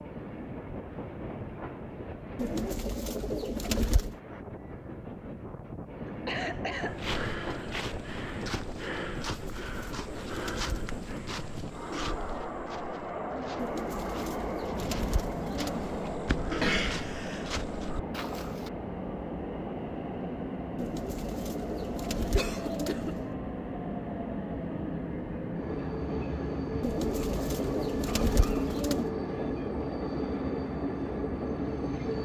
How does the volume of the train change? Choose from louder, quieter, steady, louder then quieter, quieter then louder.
louder.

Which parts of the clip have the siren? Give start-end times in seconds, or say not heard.
not heard.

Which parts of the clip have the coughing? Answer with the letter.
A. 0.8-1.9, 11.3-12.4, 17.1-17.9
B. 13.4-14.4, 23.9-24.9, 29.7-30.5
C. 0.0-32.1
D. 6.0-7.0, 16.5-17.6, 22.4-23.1
D.